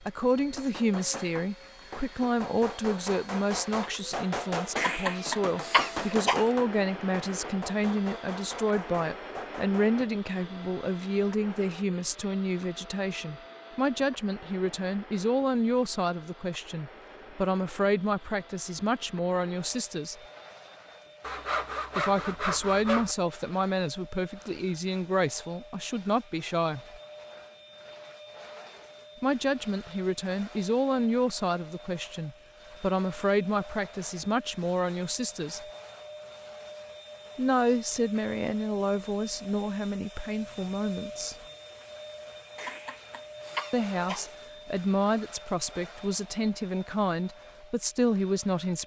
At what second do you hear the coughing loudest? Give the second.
6 s.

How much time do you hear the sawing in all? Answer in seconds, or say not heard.
2 s.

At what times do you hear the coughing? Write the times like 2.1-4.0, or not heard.
4.8-6.5, 42.5-44.2.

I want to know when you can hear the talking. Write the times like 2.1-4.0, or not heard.
0.0-20.1, 21.9-27.0, 29.2-35.6, 37.4-41.4, 43.7-48.8.